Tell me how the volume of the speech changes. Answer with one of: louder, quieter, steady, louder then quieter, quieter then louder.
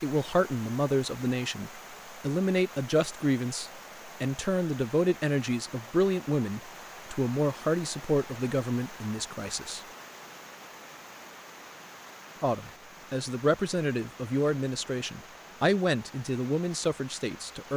steady.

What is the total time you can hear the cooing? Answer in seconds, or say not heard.
not heard.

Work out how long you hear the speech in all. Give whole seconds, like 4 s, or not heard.
15 s.